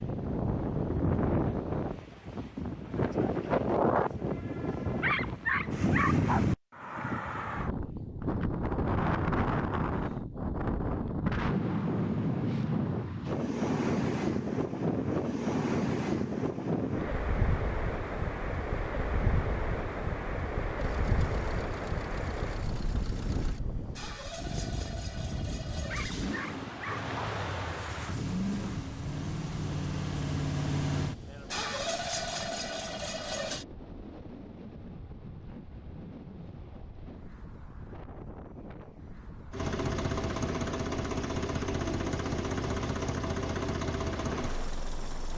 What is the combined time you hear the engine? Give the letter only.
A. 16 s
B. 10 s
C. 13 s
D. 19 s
D.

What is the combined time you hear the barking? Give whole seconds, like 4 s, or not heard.
3 s.